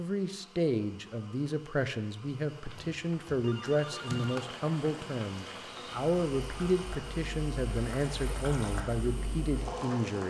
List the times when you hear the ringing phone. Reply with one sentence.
You can hear the ringing phone from 2.5 to 4.5 s.